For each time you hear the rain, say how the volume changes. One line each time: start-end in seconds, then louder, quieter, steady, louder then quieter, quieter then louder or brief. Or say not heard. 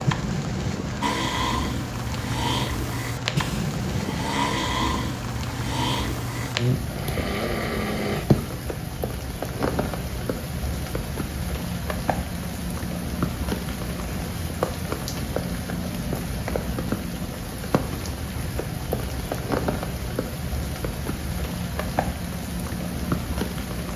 0.0-23.9 steady.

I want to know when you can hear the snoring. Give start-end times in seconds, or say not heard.
1.0-8.4.